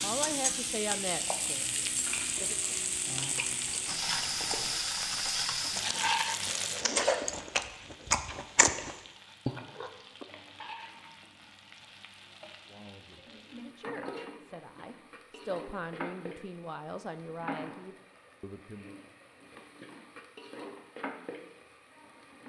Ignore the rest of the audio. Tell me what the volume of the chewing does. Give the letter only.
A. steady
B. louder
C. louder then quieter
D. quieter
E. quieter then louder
B.